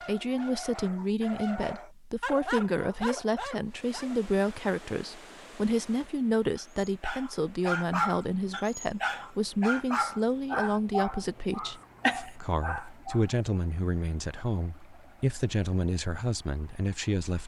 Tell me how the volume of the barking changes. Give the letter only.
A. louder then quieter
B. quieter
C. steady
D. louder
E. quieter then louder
D.